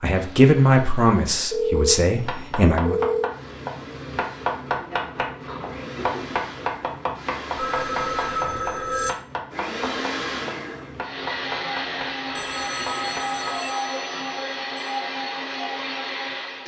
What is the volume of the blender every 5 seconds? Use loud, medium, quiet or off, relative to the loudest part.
quiet, medium, loud, loud.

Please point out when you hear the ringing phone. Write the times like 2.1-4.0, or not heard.
1.5-3.3, 7.5-9.1, 12.3-15.0.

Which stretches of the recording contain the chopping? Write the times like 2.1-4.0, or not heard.
2.1-13.6.